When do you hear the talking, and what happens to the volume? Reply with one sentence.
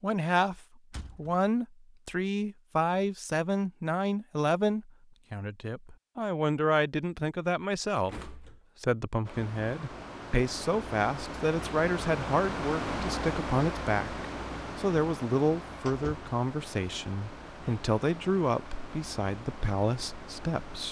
You can hear the talking from 0.0 to 20.8 s, at a steady volume.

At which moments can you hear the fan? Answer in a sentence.
You can hear the fan from 9.2 to 20.8 s.